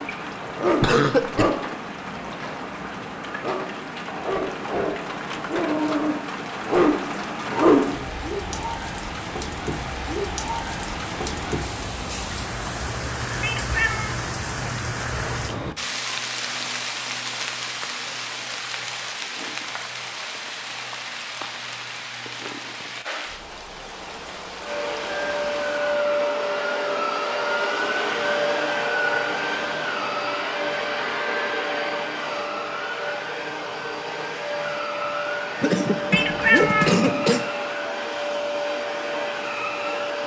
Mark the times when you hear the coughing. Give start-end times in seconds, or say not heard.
0.8-1.5, 35.6-37.5.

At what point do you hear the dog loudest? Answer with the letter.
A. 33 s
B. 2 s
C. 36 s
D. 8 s
D.